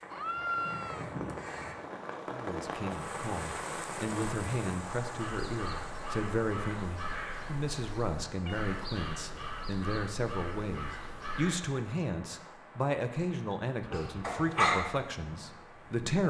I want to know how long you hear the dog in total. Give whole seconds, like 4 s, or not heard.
2 s.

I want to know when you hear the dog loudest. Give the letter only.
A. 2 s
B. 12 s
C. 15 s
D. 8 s
C.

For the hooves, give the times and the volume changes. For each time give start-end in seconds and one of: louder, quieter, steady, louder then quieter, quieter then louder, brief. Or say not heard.
not heard.